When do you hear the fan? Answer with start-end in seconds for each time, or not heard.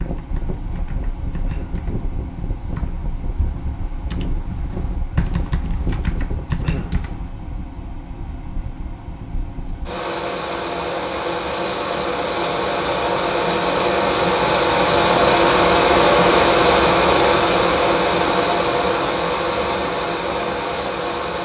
0.0-21.4.